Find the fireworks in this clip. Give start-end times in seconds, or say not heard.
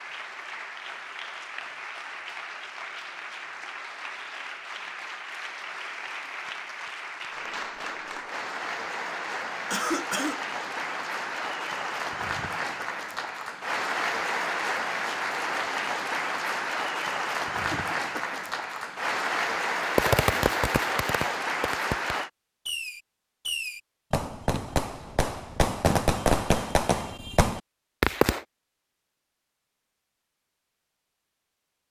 19.8-28.4.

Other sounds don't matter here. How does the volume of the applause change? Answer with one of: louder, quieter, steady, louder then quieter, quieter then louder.
louder.